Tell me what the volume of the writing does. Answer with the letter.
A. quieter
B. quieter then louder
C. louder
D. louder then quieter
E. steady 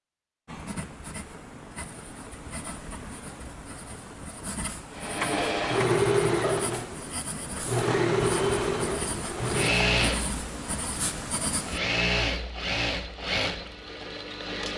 C.